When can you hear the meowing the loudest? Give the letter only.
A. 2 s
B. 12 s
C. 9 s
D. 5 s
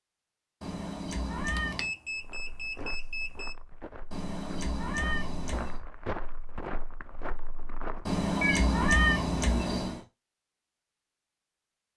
C.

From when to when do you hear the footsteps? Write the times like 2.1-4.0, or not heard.
2.1-8.2.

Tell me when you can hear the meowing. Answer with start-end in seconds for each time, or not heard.
0.6-1.9, 4.1-5.8, 8.1-10.0.